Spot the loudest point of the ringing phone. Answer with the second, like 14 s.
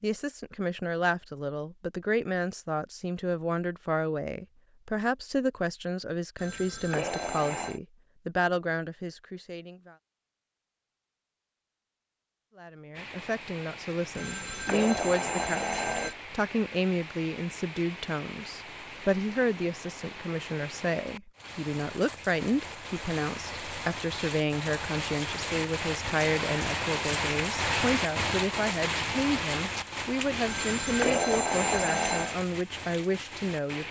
31 s.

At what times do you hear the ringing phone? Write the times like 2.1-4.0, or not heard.
6.3-7.8, 14.2-16.1, 30.4-32.4.